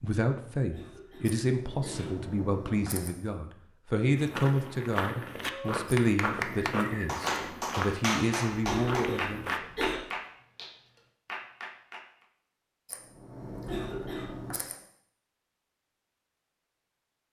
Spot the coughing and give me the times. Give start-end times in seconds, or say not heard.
0.6-2.1, 8.5-10.0, 13.5-14.6.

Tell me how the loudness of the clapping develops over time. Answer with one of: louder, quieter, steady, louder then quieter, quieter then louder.
quieter.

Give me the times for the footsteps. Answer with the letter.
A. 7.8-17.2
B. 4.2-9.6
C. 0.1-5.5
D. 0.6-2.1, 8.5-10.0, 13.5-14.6
B.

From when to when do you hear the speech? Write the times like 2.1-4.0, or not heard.
0.0-9.4.